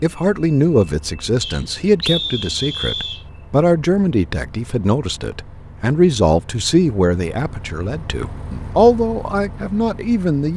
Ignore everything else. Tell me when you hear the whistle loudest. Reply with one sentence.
The loudest moment of the whistle is at 2 seconds.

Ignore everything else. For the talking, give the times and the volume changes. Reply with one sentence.
You can hear the talking from 0.0 to 10.5 s, at a steady volume.